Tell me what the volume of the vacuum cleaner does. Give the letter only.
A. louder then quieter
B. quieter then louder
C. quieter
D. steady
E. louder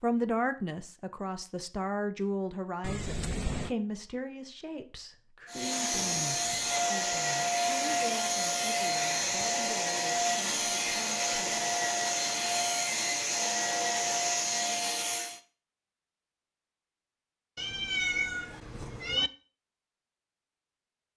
D.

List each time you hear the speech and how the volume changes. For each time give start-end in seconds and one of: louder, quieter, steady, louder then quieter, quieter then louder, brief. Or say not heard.
0.0-11.7 quieter.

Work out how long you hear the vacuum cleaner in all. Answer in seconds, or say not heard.
10 s.